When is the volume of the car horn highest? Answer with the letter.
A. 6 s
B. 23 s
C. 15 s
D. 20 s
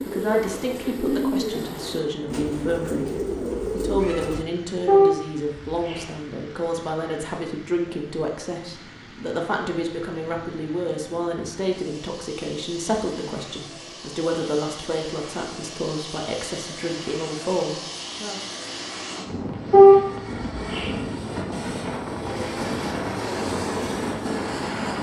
D.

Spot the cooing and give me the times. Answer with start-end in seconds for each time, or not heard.
0.0-4.5.